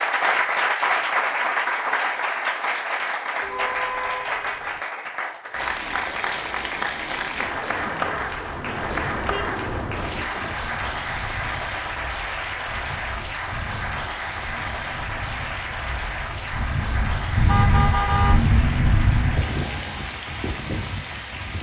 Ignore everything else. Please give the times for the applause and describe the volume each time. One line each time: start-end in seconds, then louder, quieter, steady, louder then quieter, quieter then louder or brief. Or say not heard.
0.0-21.5 quieter.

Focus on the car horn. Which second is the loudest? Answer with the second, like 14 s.
18 s.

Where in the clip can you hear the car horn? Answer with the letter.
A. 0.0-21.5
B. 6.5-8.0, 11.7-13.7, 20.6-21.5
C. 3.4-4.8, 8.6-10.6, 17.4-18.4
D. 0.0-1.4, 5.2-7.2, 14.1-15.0
C.